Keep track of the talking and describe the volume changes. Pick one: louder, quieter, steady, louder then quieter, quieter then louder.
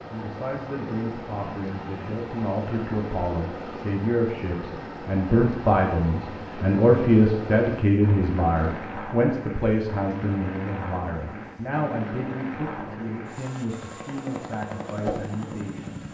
louder then quieter.